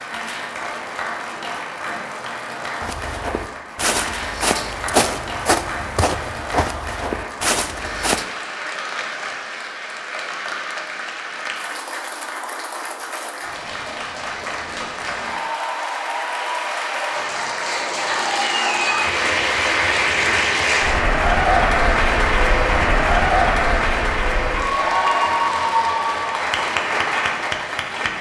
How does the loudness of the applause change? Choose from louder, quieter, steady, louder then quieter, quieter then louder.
louder.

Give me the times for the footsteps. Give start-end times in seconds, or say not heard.
2.8-8.2.